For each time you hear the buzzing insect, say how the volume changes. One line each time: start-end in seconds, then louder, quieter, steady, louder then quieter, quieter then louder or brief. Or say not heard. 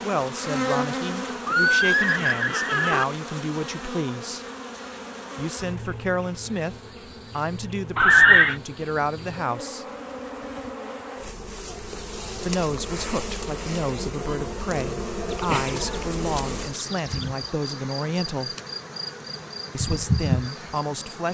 0.0-21.2 quieter then louder.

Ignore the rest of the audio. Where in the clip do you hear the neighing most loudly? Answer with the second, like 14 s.
8 s.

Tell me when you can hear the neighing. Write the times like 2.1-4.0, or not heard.
1.4-3.0, 8.0-8.6, 15.3-17.3.